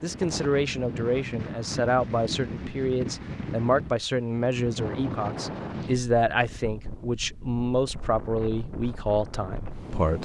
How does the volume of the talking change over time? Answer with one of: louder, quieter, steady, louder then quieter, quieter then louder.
steady.